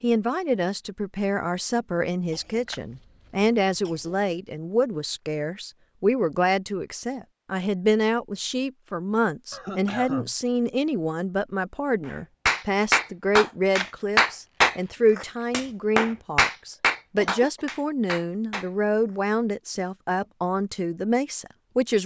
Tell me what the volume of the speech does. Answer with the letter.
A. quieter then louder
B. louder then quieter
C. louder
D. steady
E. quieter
D.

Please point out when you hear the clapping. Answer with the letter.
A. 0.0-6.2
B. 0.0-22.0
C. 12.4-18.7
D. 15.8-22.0
C.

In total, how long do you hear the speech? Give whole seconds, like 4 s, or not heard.
22 s.